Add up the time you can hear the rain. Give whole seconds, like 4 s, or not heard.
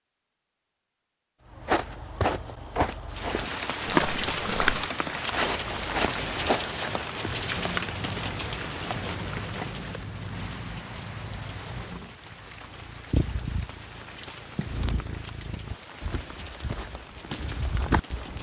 15 s.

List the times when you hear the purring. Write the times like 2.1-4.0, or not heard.
7.2-15.8.